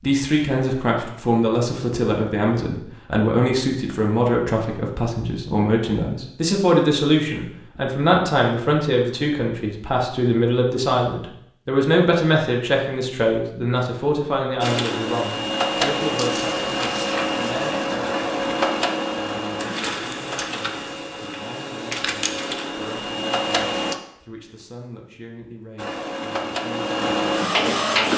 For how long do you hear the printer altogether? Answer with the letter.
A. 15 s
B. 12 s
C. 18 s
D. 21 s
B.